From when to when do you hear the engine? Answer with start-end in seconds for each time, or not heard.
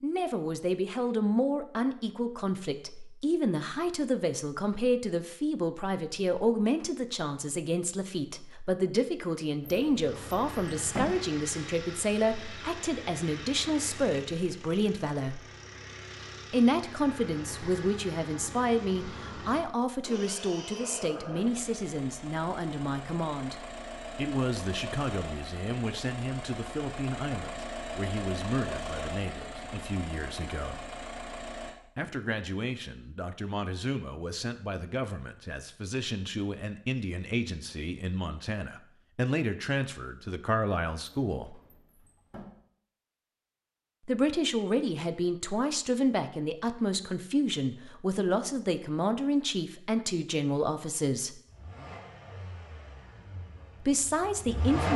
10.0-31.8, 51.5-54.9.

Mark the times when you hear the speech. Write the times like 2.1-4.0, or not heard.
0.0-15.4, 16.5-30.8, 31.9-41.5, 44.0-51.4, 53.8-54.9.